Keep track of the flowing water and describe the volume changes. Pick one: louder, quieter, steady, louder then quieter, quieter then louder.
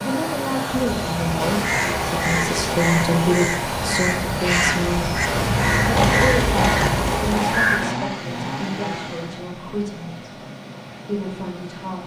quieter.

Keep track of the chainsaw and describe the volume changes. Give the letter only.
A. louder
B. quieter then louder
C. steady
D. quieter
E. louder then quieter
E.